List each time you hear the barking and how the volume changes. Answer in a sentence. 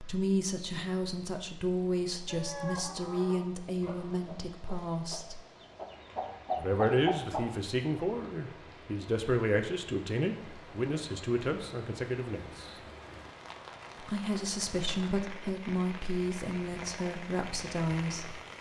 The barking can't be heard in this clip.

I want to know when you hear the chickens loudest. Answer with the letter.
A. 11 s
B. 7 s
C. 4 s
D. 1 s
B.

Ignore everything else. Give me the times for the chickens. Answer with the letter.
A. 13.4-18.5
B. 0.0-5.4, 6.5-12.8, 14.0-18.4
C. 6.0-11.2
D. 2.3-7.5
D.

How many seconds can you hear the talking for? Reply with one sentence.
The talking can be heard for 16 seconds in total.